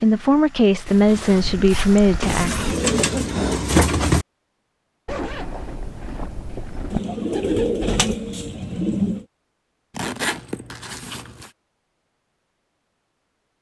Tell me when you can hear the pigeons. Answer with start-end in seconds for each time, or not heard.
2.2-4.2, 6.9-9.2.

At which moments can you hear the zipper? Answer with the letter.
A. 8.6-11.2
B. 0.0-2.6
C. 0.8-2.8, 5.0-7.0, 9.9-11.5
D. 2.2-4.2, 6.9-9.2
C.